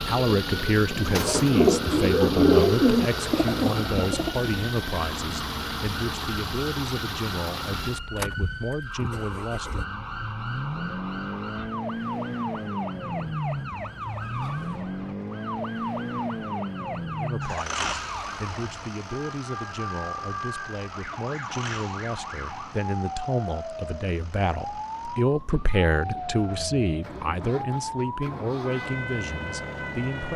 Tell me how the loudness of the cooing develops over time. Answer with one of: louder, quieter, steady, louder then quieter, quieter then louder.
louder then quieter.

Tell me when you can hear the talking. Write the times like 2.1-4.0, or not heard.
0.1-9.8, 17.1-30.3.